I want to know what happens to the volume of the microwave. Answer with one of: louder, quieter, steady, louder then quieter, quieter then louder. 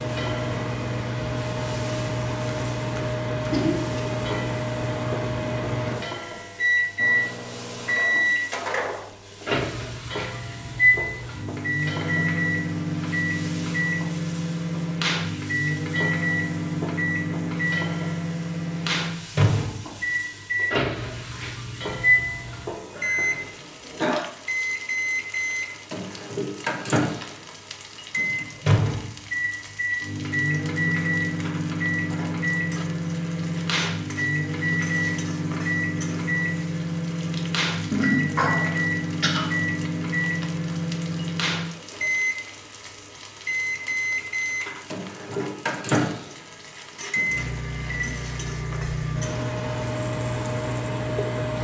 steady.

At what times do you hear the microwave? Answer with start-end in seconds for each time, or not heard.
0.0-51.5.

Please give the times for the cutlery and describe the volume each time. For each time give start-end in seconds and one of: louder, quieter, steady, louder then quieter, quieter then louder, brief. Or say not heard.
not heard.